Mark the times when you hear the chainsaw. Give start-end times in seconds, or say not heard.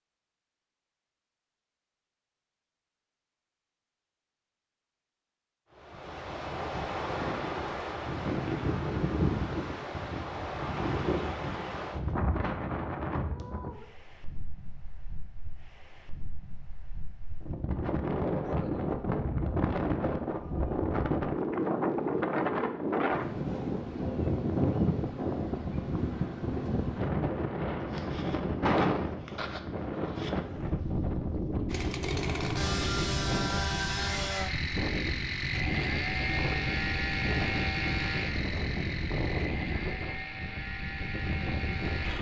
31.6-42.1.